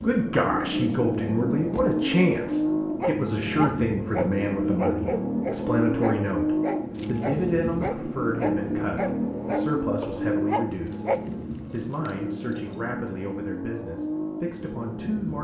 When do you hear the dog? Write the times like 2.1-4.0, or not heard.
3.0-11.2.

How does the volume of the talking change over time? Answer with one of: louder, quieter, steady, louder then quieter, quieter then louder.
quieter.